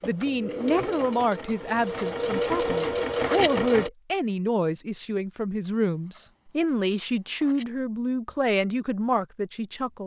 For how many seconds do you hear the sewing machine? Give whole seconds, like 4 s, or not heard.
4 s.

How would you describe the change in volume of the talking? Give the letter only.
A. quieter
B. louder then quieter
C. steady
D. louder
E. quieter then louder
C.